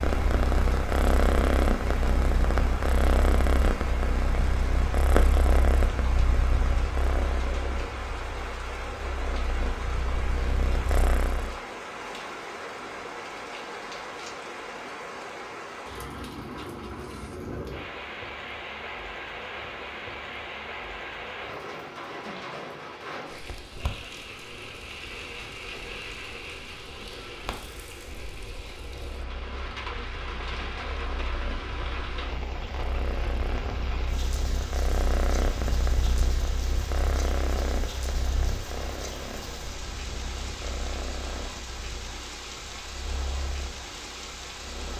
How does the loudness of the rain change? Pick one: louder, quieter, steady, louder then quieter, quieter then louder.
steady.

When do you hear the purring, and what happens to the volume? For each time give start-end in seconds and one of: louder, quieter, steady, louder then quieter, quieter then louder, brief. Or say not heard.
0.0-11.6 quieter
28.8-44.9 louder then quieter.